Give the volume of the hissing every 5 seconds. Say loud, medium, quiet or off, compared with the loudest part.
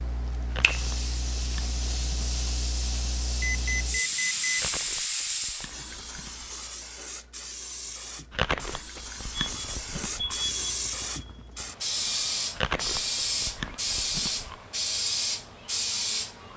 loud, medium, loud, loud.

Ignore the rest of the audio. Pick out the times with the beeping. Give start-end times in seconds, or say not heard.
3.4-4.7, 9.3-11.7.